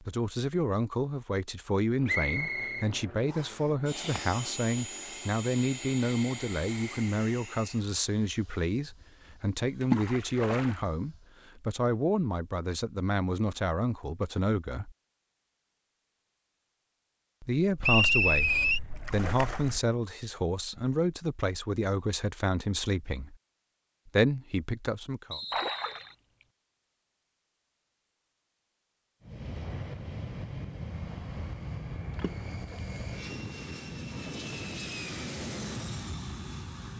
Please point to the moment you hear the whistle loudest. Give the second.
18 s.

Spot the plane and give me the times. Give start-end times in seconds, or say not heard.
1.9-11.4, 29.2-36.9.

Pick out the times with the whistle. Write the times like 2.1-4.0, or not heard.
2.0-3.5, 17.8-18.8, 25.3-26.1.